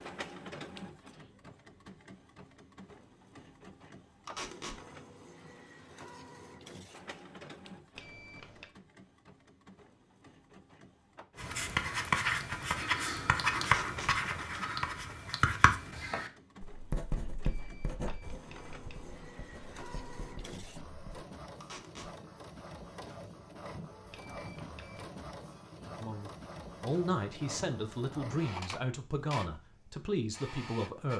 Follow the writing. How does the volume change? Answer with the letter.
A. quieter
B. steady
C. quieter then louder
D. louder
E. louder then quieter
A.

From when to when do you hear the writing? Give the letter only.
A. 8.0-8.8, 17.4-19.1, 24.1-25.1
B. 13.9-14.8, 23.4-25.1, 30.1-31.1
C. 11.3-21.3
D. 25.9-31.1
C.